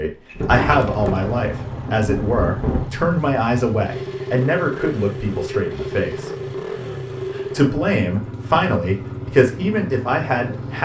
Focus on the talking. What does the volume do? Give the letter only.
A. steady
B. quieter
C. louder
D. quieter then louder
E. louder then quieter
A.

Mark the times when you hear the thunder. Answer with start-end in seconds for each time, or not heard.
0.3-2.9.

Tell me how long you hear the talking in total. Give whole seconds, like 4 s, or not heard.
10 s.